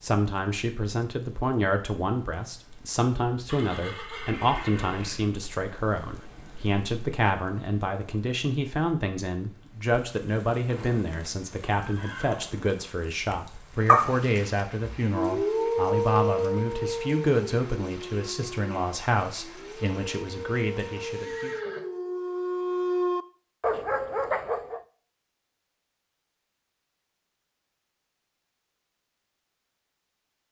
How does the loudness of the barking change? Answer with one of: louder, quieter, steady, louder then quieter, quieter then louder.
quieter then louder.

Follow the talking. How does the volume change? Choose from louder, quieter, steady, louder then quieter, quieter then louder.
steady.